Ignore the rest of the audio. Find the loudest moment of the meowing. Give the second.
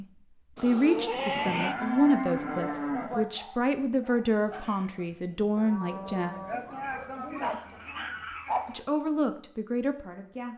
1 s.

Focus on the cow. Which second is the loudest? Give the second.
2 s.